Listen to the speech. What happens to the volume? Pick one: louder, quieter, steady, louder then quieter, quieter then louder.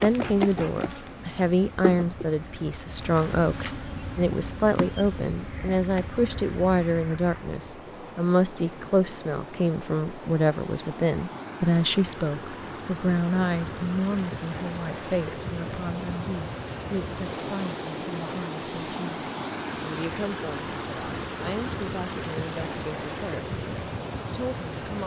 quieter.